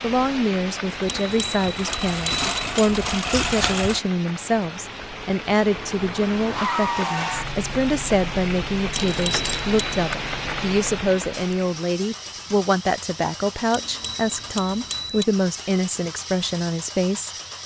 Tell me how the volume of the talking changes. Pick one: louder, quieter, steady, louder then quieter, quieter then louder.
steady.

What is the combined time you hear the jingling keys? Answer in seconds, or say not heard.
2 s.